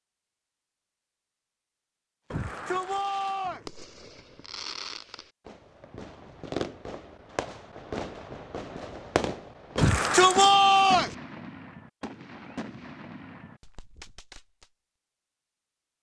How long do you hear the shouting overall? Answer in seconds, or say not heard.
3 s.